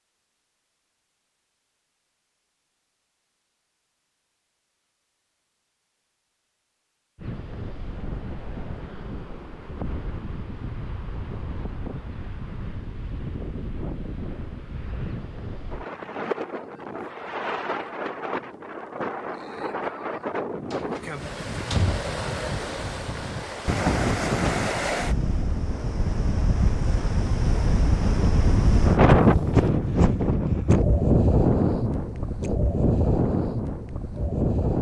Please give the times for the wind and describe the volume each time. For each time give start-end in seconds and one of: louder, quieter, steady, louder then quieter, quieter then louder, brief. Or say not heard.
7.2-34.7 louder.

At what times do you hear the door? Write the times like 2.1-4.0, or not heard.
20.7-22.1.